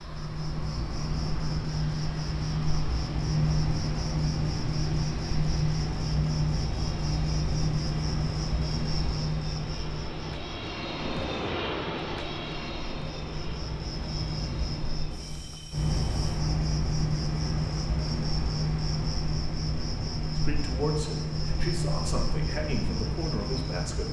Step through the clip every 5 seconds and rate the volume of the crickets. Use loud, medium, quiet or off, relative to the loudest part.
loud, loud, medium, loud, loud.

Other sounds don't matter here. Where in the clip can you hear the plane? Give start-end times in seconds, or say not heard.
0.0-16.4.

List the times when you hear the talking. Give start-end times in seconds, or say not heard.
20.4-24.0.